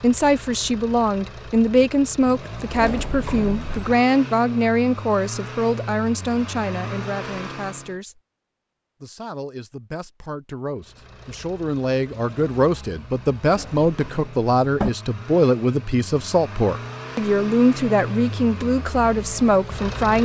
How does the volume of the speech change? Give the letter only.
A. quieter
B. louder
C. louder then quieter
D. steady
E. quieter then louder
E.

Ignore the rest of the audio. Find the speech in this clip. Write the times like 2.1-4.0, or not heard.
0.0-8.2, 9.0-20.2.